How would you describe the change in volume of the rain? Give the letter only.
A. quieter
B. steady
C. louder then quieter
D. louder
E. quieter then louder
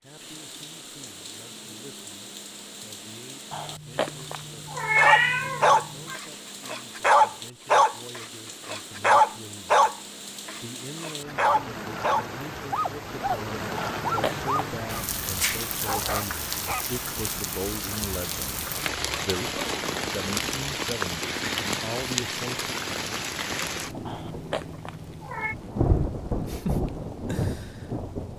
D.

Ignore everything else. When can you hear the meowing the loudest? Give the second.
5 s.